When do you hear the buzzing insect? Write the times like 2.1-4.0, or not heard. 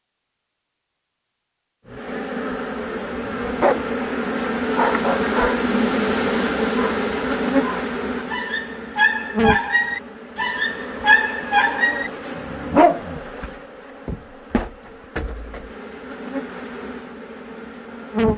1.9-18.3.